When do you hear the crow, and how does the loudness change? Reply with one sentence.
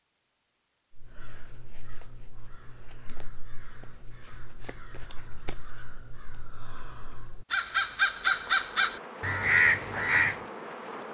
You can hear the crow from 0.9 to 10.3 s, getting louder.